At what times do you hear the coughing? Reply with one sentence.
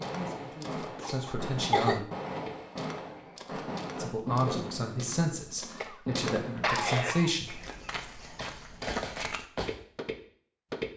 You can hear the coughing from 1.0 to 2.0 s and from 5.8 to 7.3 s.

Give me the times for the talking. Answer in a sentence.
You can hear the talking from 0.0 to 2.0 s and from 4.0 to 7.7 s.